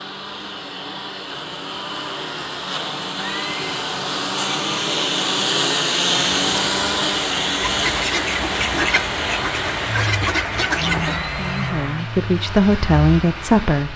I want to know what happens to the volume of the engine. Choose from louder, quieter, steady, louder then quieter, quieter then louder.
louder then quieter.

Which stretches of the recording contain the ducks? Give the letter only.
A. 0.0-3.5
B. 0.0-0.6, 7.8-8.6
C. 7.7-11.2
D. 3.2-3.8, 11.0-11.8
C.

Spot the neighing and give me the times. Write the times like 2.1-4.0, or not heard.
3.2-3.8, 11.0-11.8.